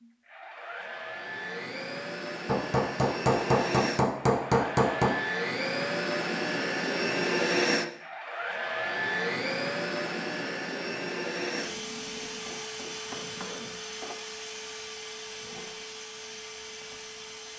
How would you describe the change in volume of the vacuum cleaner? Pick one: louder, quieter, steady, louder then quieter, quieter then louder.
louder then quieter.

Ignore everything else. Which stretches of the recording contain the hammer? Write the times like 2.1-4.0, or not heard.
2.5-5.2, 12.2-14.2.